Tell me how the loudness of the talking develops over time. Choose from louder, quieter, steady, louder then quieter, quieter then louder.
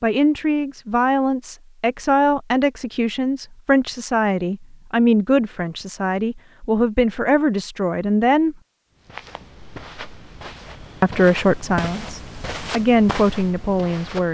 steady.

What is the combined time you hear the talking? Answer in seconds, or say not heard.
12 s.